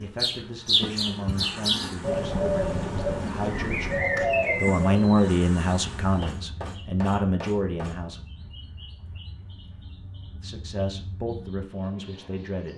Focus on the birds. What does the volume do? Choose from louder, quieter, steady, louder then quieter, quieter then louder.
quieter.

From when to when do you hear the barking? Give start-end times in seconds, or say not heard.
not heard.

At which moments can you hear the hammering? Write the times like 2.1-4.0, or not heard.
6.2-8.0.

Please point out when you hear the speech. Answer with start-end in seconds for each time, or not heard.
0.0-8.2, 10.4-12.7.